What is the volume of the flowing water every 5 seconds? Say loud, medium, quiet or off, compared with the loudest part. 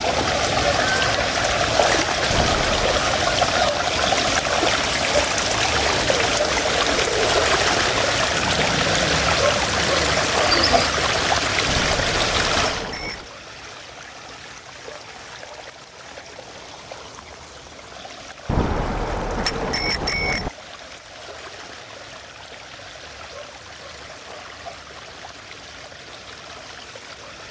loud, loud, loud, quiet, quiet, quiet.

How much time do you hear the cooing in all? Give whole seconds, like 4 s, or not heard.
5 s.